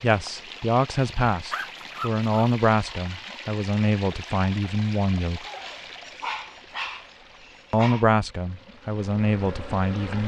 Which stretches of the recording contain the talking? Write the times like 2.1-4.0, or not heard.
0.0-5.5, 7.7-10.2.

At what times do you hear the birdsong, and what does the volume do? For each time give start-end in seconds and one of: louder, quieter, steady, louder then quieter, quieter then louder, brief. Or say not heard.
not heard.